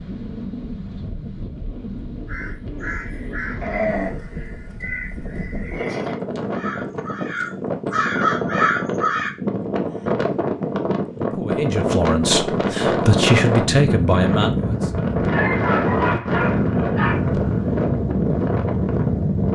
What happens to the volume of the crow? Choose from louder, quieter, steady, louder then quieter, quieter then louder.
quieter then louder.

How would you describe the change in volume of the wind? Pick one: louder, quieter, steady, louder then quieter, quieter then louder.
louder.